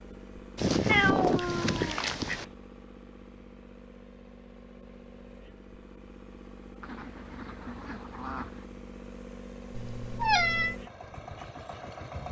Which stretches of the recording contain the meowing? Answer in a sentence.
You can hear the meowing from 0.8 to 2.5 s and from 9.8 to 10.8 s.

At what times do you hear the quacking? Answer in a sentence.
The quacking can be heard from 0.6 to 2.5 s and from 6.8 to 8.7 s.